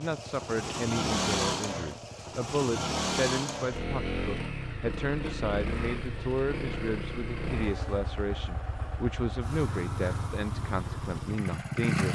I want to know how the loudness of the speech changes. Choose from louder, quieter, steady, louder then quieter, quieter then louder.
steady.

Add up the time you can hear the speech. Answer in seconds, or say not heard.
12 s.